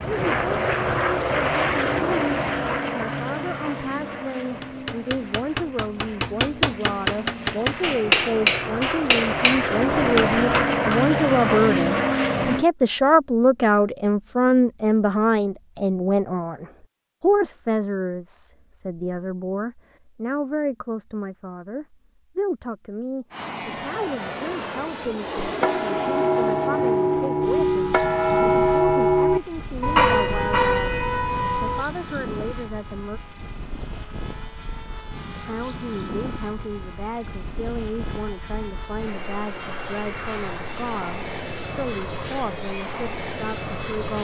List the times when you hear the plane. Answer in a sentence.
You can hear the plane from 0.0 to 12.7 s and from 23.3 to 44.1 s.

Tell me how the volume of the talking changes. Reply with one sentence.
The volume of the talking goes up, then down.